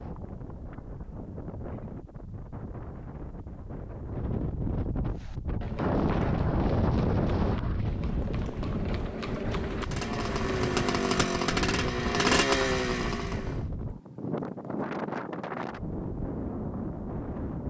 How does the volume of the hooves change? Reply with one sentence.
The volume of the hooves goes up.